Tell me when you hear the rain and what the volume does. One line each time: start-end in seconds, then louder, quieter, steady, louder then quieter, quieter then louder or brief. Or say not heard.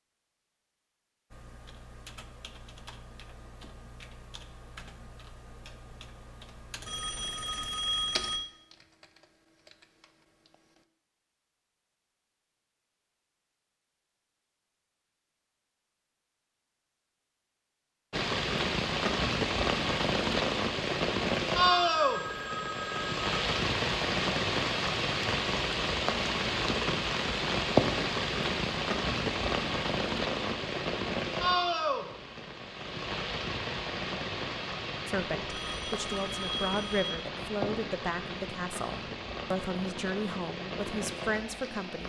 18.1-42.0 quieter.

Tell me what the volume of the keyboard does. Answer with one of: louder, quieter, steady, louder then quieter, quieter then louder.
louder then quieter.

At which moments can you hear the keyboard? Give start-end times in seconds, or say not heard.
1.3-10.8.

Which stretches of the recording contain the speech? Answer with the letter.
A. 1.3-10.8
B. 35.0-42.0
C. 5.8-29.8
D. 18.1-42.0
B.